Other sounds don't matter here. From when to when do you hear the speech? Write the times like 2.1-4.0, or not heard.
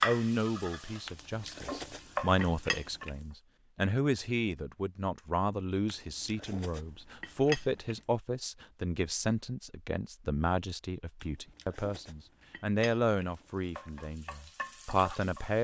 0.0-15.5.